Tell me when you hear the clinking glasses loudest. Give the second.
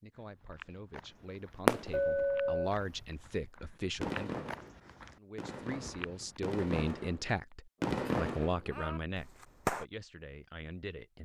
2 s.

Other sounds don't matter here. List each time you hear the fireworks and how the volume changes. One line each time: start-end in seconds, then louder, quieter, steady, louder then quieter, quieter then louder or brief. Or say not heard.
1.1-3.3 brief
4.0-9.8 louder then quieter.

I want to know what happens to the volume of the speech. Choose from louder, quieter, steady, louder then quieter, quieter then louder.
louder then quieter.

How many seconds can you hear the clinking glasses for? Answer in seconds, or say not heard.
2 s.